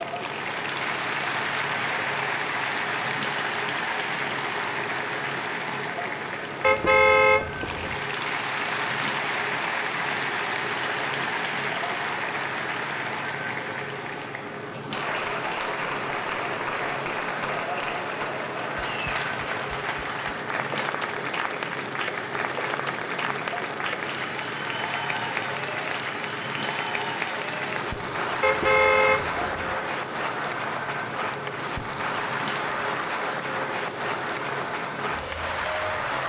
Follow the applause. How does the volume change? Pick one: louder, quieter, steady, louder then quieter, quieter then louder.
steady.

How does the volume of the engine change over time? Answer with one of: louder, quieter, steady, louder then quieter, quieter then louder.
steady.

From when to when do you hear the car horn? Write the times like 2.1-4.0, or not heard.
6.6-7.8, 28.4-29.8.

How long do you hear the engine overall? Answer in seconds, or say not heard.
36 s.